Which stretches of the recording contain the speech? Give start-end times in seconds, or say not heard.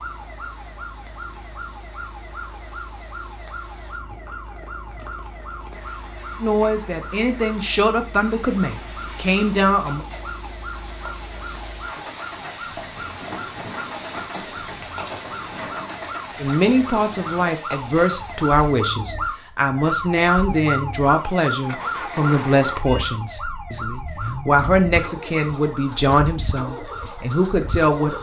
6.4-10.1, 16.4-28.1.